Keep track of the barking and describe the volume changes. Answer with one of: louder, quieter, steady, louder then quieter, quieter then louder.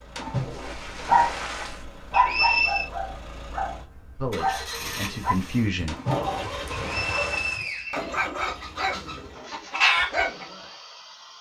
quieter then louder.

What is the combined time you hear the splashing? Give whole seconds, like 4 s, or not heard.
4 s.